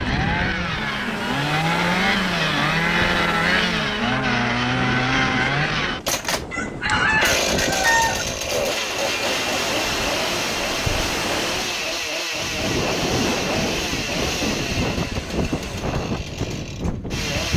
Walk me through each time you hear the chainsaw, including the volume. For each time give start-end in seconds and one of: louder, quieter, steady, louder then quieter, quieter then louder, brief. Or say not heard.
0.0-17.5 quieter.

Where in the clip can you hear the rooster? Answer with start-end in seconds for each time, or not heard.
6.5-8.2.